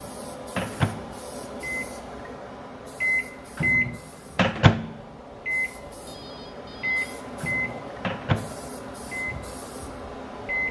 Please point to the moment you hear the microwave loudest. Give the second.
4 s.